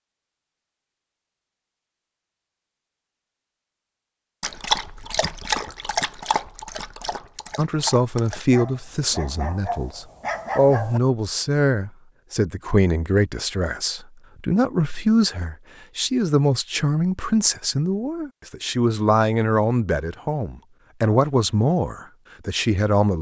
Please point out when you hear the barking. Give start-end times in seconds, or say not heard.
4.4-11.0.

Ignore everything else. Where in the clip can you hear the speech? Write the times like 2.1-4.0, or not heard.
7.5-23.1.